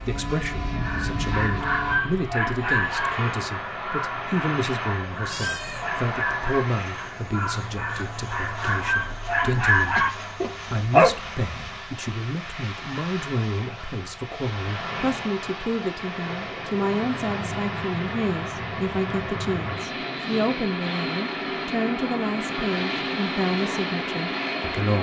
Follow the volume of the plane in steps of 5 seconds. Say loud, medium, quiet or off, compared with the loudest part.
loud, medium, medium, loud, loud.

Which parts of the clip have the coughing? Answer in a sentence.
The coughing can be heard from 9.9 to 10.6 s.